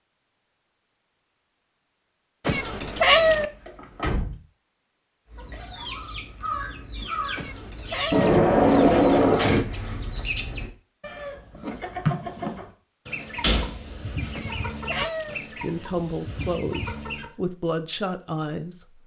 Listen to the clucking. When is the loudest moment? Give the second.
12 s.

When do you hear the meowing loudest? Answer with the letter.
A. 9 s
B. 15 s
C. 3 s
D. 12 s
C.